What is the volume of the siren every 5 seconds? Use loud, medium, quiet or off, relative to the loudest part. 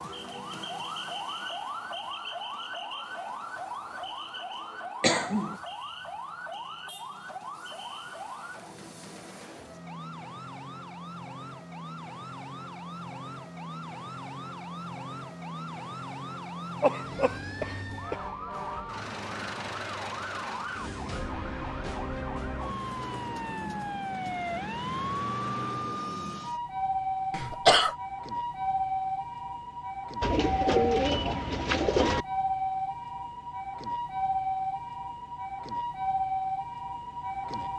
medium, medium, medium, medium, loud, loud, loud, loud.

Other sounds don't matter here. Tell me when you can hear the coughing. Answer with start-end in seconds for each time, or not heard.
5.0-5.6, 16.8-18.1, 27.3-27.9.